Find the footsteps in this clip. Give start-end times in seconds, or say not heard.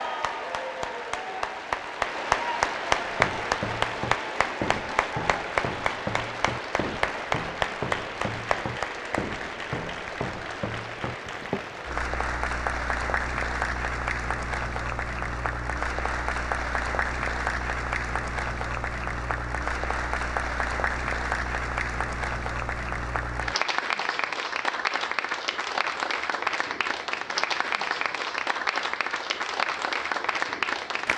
3.0-11.8.